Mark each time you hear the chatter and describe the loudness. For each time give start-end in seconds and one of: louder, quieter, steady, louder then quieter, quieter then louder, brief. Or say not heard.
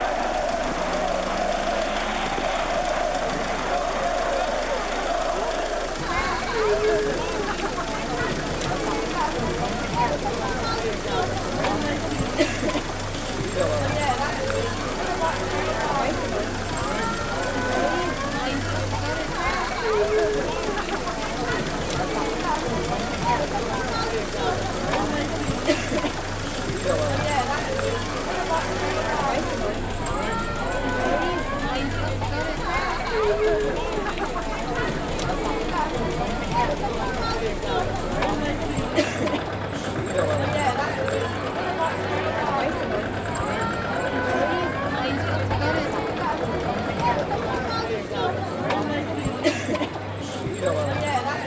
0.0-51.4 steady.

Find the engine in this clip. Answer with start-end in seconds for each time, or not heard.
0.0-47.7.